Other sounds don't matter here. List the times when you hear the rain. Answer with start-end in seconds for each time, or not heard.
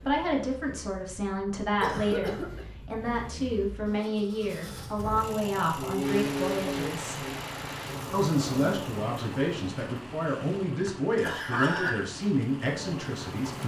6.0-13.6.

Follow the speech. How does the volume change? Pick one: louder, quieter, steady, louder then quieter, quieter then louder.
steady.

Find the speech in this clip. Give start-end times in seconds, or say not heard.
0.1-7.2, 8.1-13.6.